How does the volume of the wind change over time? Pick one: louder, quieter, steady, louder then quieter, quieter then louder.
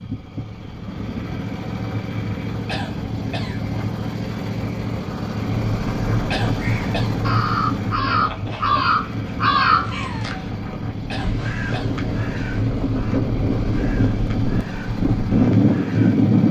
louder.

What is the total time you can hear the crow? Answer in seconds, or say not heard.
10 s.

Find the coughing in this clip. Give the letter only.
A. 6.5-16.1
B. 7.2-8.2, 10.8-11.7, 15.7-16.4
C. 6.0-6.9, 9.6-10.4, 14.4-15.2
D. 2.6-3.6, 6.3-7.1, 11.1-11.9
D.